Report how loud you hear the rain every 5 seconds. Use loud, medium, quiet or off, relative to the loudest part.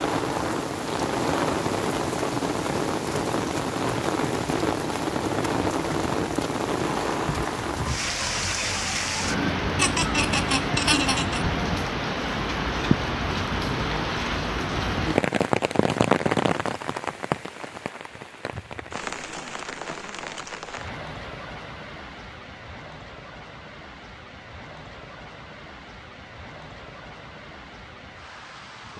loud, loud, loud, loud, quiet, quiet.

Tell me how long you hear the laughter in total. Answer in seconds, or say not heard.
2 s.